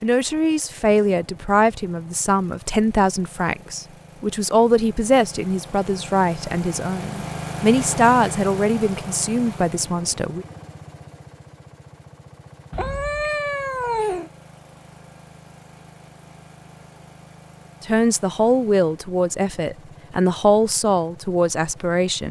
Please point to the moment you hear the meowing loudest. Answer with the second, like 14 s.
14 s.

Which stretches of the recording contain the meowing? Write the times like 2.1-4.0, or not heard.
12.7-14.3.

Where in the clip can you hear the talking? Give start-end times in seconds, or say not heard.
0.0-10.4, 17.8-22.2.